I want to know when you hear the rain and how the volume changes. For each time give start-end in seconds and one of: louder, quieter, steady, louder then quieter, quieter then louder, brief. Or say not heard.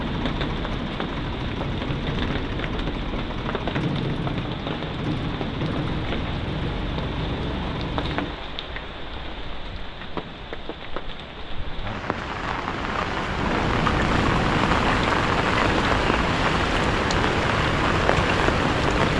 0.0-19.1 louder.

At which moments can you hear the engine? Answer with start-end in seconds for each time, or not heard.
0.0-8.3, 13.3-19.1.